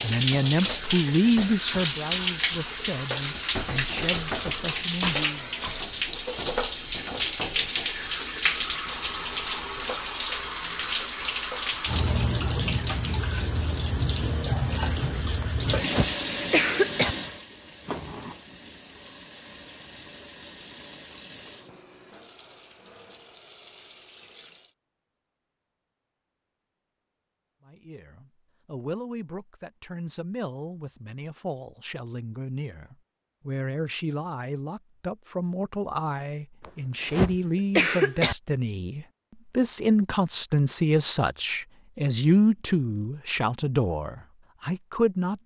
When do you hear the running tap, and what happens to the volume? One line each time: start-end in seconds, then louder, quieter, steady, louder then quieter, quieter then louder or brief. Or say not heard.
0.0-24.8 quieter.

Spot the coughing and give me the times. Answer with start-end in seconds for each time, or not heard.
15.4-17.1, 36.6-38.4.